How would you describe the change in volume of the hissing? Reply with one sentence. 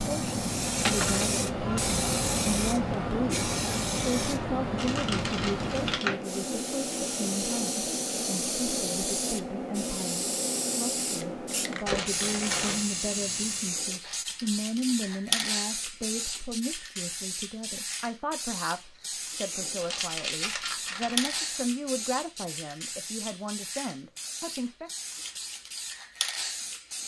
The loudness of the hissing goes down.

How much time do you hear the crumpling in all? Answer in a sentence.
The crumpling can be heard for 4 seconds in total.